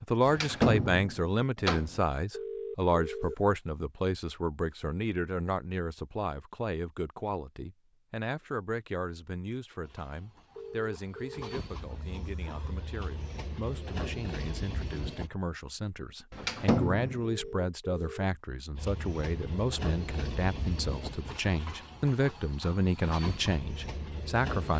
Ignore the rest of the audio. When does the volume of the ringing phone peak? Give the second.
3 s.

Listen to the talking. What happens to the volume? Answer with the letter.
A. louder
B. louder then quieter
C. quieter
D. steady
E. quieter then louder
E.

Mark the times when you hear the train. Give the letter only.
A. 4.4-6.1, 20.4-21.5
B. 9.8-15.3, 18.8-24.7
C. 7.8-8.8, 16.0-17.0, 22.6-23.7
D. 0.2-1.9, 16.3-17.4
B.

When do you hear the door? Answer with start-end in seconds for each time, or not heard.
0.2-1.9, 16.3-17.4.